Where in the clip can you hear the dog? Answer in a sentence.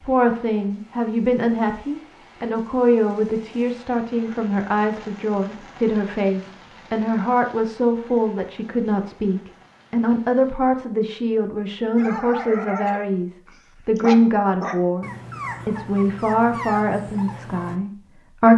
You can hear the dog from 11.9 to 17.8 s.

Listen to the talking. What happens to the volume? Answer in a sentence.
The loudness of the talking stays about the same.